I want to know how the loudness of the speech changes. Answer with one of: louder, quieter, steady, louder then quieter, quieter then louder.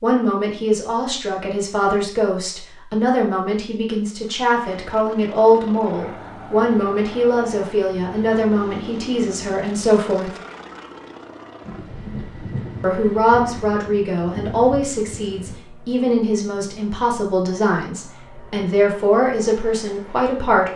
steady.